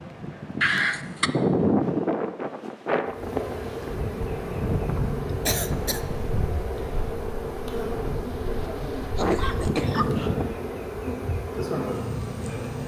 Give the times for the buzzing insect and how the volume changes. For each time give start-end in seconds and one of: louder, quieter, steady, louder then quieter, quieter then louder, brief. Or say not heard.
3.0-12.8 steady.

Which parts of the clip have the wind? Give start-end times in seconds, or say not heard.
0.0-10.5.